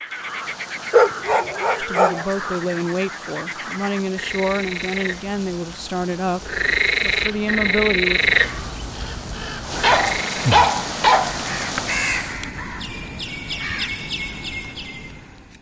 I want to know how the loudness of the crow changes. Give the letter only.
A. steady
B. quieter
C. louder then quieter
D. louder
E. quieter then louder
D.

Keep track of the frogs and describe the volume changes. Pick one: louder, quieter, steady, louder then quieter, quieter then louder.
louder.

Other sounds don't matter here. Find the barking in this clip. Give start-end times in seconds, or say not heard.
0.9-2.2, 9.8-11.8.